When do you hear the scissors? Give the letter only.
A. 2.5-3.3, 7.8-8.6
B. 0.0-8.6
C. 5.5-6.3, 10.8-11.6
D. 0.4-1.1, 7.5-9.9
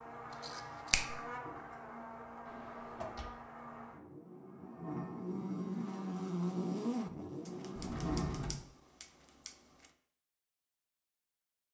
D.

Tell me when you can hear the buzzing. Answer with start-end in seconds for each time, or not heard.
0.0-8.6.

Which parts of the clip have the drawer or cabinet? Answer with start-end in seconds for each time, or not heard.
2.5-3.3, 7.8-8.6.